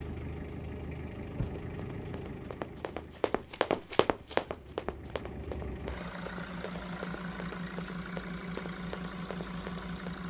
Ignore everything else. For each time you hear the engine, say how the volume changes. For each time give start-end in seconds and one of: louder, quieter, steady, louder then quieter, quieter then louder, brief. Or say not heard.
0.0-10.2 quieter then louder.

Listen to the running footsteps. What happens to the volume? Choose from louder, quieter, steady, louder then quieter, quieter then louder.
louder then quieter.